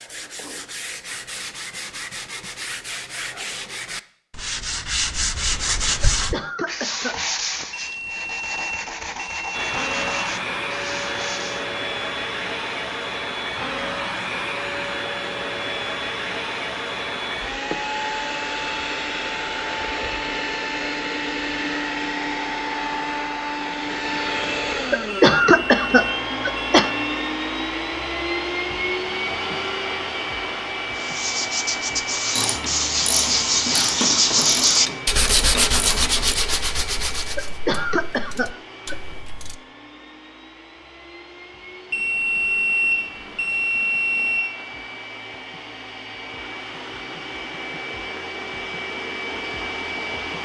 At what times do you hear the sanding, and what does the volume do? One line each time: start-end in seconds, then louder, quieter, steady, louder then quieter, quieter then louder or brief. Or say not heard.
0.0-11.7 louder then quieter
30.9-37.6 louder then quieter.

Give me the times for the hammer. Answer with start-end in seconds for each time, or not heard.
not heard.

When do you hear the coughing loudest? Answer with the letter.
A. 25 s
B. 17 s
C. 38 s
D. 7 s
A.